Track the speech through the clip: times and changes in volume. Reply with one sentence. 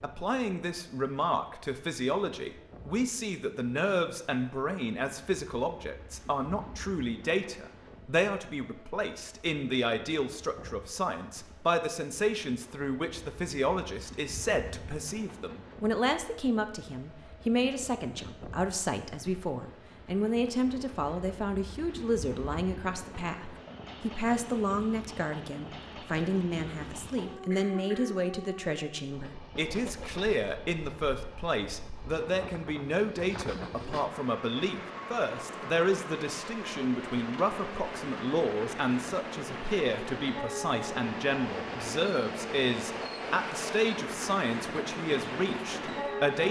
The speech can be heard from 0.0 to 46.4 s, at a steady volume.